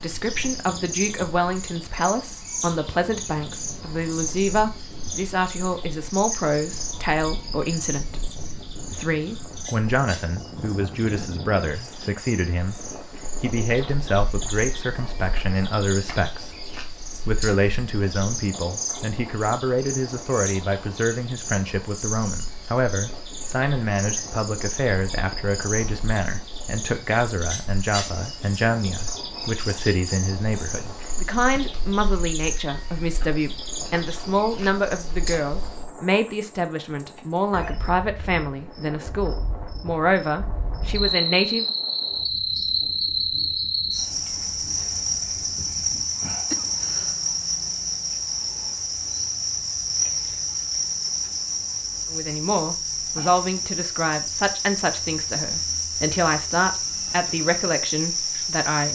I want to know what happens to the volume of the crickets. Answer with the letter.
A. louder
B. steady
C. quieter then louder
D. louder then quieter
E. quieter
A.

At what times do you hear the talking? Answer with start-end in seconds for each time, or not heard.
0.0-41.7, 52.1-58.8.